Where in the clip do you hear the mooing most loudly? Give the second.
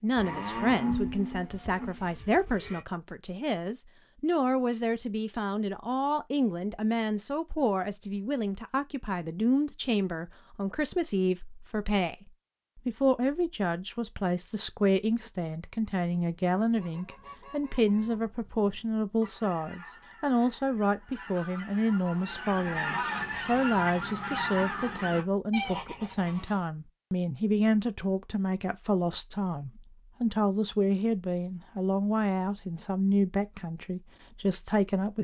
1 s.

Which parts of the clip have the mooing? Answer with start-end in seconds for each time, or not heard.
0.1-2.9.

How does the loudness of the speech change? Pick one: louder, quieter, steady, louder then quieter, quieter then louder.
steady.